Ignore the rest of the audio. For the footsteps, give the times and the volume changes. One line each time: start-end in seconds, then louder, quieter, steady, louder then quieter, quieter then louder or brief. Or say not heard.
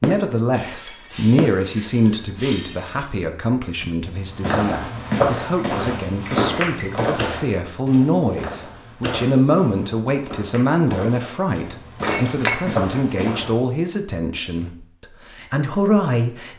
4.2-13.6 quieter then louder.